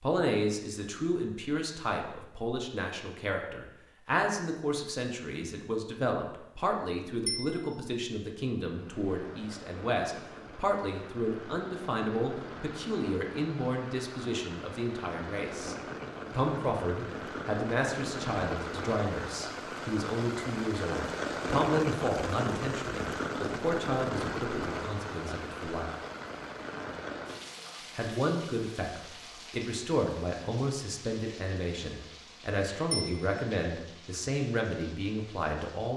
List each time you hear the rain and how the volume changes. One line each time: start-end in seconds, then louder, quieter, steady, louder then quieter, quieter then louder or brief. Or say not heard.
8.7-35.9 louder then quieter.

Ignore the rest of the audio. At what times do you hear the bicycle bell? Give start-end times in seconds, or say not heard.
7.2-7.7, 32.9-33.4.